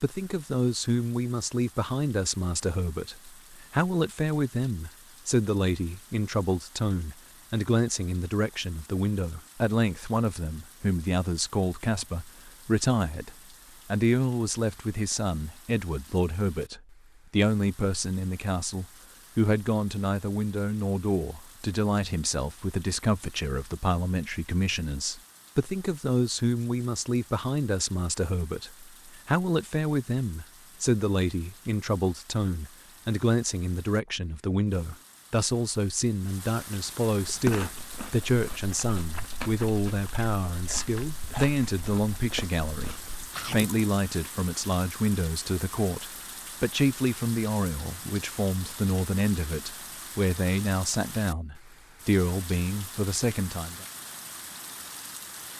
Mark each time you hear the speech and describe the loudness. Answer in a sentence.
You can hear the speech from 0.0 to 53.9 s, at a steady volume.